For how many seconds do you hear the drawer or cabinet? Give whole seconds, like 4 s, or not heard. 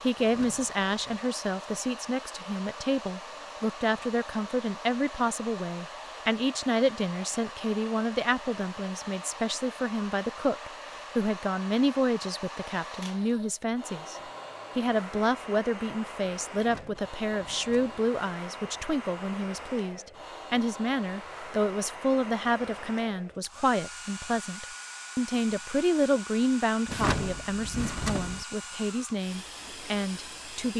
4 s.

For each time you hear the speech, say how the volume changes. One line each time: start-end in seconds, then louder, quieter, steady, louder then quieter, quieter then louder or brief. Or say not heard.
0.0-30.7 steady.